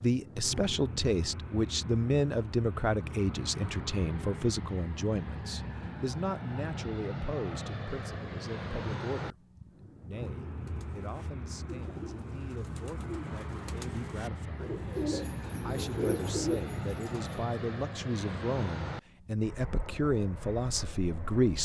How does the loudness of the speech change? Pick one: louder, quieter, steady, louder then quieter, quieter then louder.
quieter then louder.